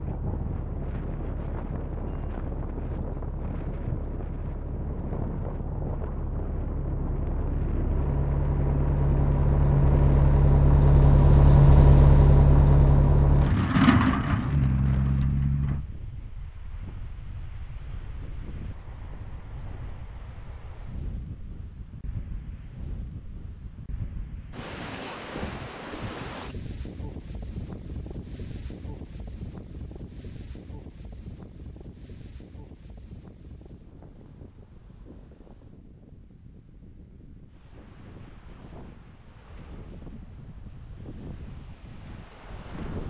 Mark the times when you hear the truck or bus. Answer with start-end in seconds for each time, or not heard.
0.0-15.8.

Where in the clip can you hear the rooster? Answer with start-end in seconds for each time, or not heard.
not heard.